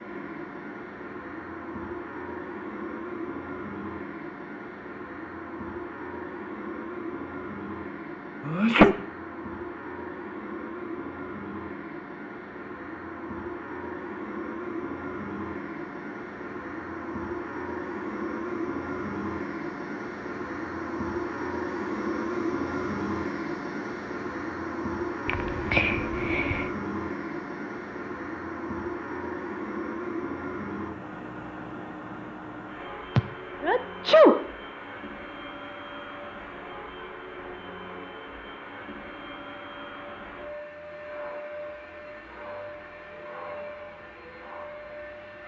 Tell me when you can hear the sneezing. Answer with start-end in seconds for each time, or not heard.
8.4-8.9, 25.2-26.7, 33.1-34.5.